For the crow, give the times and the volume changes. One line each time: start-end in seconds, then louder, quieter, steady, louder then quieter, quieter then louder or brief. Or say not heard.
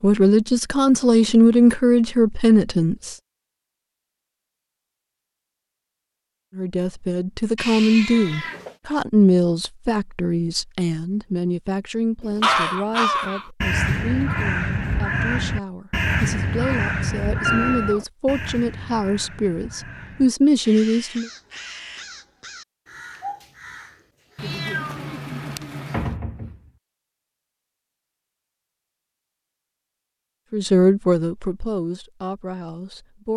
12.2-24.5 quieter.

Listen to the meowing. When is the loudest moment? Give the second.
18 s.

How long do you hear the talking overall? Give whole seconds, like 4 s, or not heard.
21 s.